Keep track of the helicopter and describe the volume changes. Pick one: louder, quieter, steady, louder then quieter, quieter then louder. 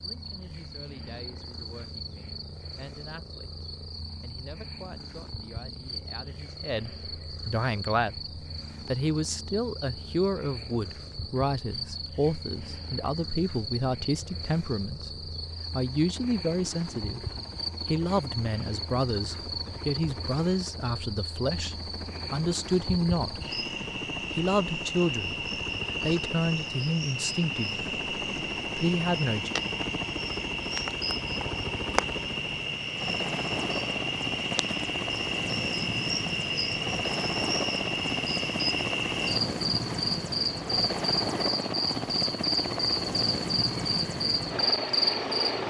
louder.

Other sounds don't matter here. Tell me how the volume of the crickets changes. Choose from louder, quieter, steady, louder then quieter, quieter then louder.
louder.